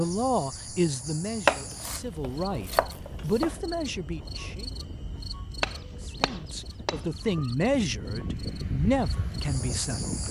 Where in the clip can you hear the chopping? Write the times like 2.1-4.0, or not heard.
1.4-3.5, 5.6-7.5.